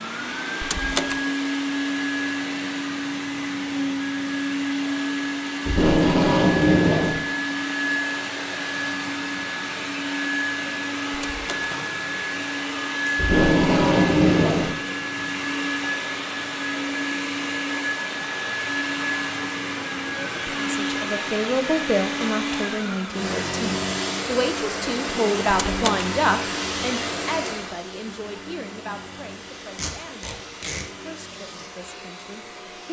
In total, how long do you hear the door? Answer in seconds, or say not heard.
2 s.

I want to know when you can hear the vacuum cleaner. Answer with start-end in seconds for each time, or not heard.
0.0-32.8.